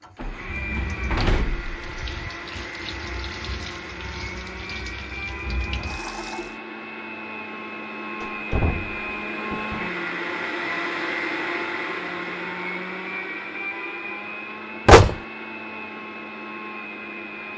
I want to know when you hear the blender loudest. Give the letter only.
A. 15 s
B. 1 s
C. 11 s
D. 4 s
C.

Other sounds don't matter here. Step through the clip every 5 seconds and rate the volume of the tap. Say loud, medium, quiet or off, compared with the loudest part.
loud, loud, off, off.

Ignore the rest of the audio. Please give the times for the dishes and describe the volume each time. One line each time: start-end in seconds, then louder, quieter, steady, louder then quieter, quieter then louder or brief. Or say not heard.
not heard.